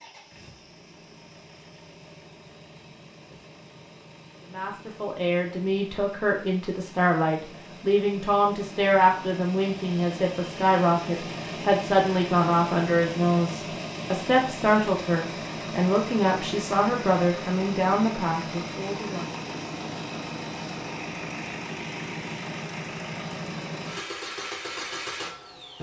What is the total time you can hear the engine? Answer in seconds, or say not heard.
26 s.